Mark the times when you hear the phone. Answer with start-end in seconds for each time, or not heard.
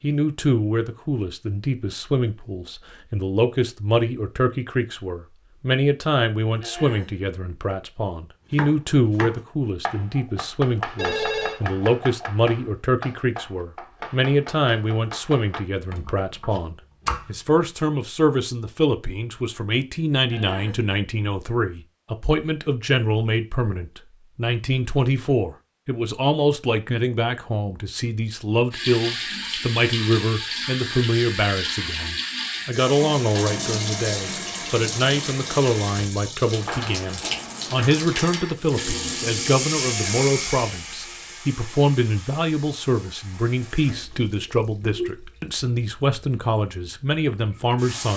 10.9-11.6, 36.6-38.5.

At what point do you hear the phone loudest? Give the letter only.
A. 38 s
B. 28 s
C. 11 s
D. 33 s
C.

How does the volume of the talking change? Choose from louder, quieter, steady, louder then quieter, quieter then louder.
steady.